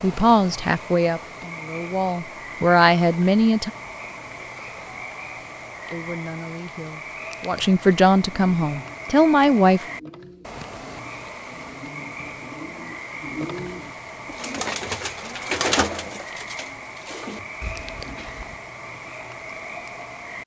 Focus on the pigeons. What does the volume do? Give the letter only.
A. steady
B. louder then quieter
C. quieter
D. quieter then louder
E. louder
B.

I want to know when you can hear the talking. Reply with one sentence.
You can hear the talking from 0.0 to 3.7 s and from 5.9 to 9.8 s.